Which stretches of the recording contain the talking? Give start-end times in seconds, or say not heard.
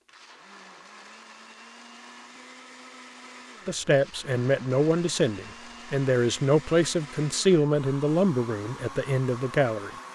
3.6-9.9.